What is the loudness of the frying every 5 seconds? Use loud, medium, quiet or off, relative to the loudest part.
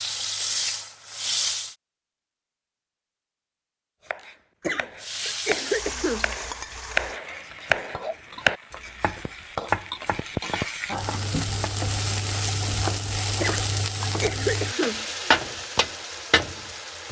loud, medium, loud, loud.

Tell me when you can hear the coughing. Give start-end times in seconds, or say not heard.
4.6-6.3, 13.3-15.1.